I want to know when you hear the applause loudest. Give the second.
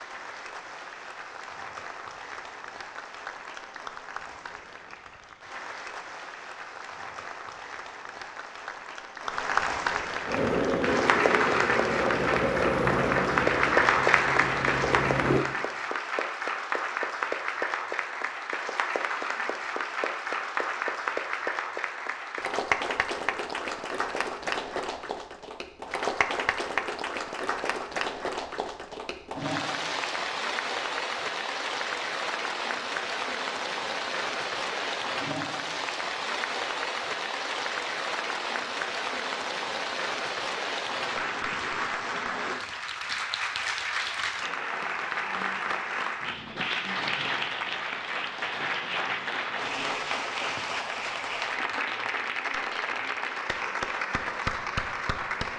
14 s.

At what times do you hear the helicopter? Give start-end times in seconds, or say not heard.
10.2-15.4.